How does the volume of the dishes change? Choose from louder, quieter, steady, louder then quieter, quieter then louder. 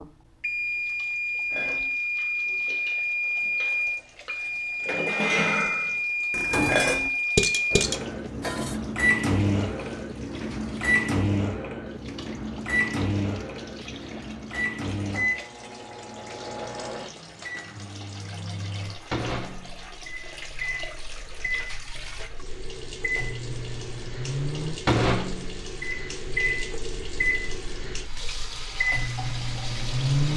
louder.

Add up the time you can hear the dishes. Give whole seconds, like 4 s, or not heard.
7 s.